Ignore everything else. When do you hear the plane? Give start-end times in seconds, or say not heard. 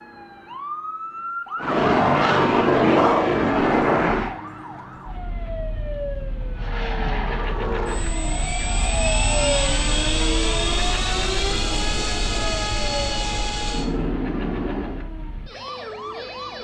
1.6-4.3, 6.5-15.1.